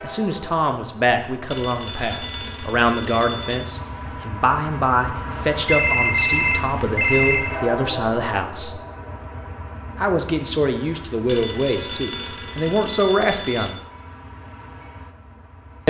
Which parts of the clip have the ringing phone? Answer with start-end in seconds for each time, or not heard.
1.5-3.6, 5.7-7.5, 11.2-13.8.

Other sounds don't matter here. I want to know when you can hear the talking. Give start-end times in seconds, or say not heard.
0.0-8.8, 9.9-13.8.